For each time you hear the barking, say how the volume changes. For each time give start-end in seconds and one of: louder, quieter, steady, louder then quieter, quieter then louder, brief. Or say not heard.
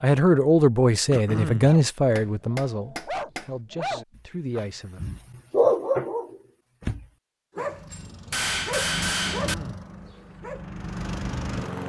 1.6-10.7 louder then quieter.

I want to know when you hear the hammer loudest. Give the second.
9 s.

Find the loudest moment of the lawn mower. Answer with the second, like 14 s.
11 s.